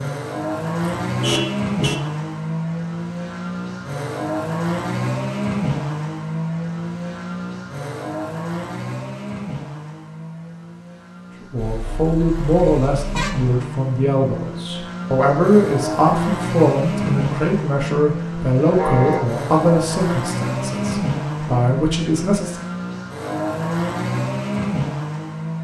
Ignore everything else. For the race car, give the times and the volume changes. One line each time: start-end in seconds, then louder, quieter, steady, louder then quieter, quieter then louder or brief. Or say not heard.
0.0-25.5 quieter then louder.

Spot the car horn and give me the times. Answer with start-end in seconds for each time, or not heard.
1.1-2.0, 11.6-13.6, 18.8-19.3.